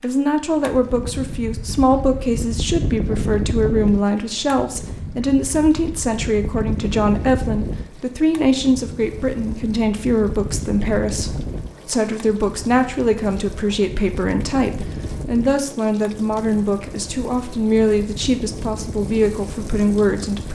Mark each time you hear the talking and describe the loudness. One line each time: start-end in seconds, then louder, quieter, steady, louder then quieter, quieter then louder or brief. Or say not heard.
0.0-20.4 steady.